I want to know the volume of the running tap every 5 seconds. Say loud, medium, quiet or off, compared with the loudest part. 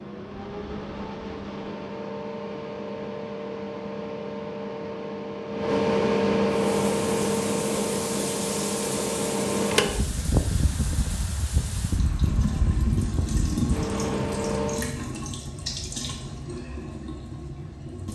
off, loud, loud, loud.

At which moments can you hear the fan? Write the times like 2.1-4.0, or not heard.
0.0-14.9.